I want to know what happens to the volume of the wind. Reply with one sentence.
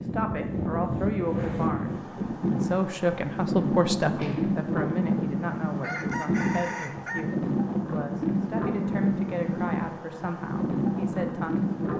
The volume of the wind stays about the same.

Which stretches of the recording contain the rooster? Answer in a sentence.
You can hear the rooster from 5.8 to 7.2 s.